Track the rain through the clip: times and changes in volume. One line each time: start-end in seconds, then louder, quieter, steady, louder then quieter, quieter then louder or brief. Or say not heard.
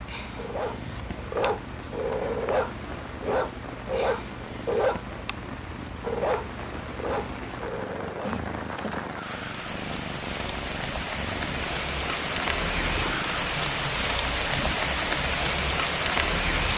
0.0-16.7 louder.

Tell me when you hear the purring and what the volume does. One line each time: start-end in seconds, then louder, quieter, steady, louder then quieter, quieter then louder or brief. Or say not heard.
0.0-13.4 steady.